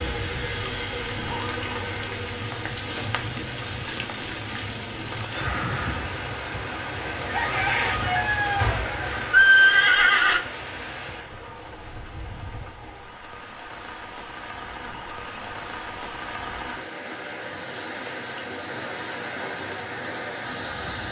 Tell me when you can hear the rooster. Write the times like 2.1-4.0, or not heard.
7.2-9.2.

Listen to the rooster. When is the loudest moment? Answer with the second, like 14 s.
8 s.